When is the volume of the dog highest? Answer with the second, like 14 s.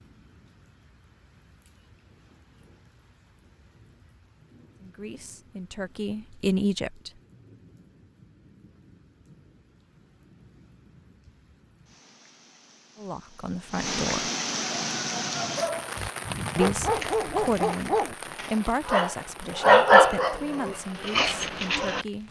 20 s.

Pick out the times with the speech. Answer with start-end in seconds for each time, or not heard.
4.8-7.2, 12.9-14.3, 16.6-22.2.